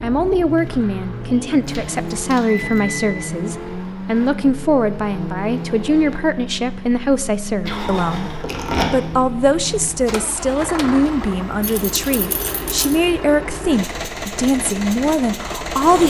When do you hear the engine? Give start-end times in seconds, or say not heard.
0.0-16.0.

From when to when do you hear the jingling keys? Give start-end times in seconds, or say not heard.
1.6-3.1, 7.7-9.0, 11.6-13.0.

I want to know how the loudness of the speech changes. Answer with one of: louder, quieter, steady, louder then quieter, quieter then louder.
steady.